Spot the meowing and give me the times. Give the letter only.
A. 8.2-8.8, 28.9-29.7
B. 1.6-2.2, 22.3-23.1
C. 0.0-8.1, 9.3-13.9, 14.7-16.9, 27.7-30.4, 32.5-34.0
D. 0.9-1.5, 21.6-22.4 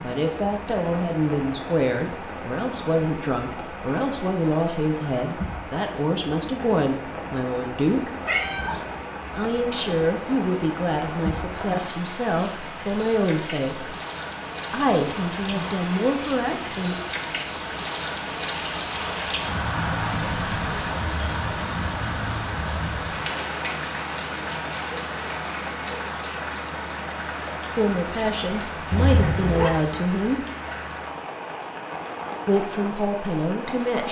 A.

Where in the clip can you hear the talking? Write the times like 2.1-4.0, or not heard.
0.0-8.1, 9.3-13.9, 14.7-16.9, 27.7-30.4, 32.5-34.0.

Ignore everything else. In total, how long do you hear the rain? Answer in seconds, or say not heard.
34 s.